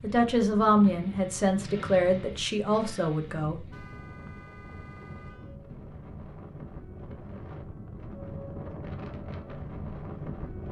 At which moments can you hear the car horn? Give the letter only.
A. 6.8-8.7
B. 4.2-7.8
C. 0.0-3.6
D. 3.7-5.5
D.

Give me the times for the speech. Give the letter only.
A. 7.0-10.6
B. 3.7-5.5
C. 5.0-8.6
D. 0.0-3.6
D.